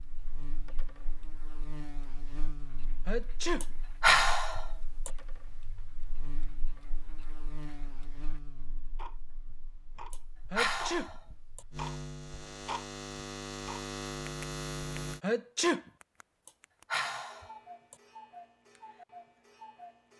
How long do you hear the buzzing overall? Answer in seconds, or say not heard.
15 s.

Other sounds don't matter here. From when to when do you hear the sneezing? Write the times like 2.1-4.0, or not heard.
3.0-3.6, 10.5-11.1, 15.2-15.8.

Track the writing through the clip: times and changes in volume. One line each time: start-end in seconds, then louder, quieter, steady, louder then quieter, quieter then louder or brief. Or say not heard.
not heard.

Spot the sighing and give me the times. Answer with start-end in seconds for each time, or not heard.
3.6-5.1, 10.1-11.6, 16.4-17.9.